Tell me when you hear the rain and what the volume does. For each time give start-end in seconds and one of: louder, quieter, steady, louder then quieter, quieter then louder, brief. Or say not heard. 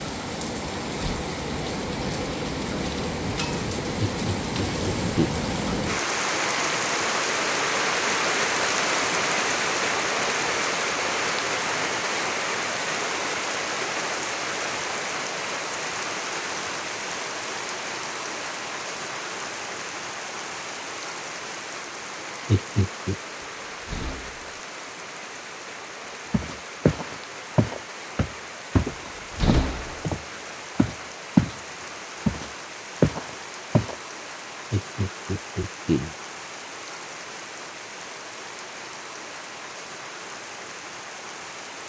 0.0-41.8 quieter.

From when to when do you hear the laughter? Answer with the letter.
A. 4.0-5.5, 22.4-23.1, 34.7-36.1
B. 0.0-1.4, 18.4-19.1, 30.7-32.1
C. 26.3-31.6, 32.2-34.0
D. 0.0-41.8
A.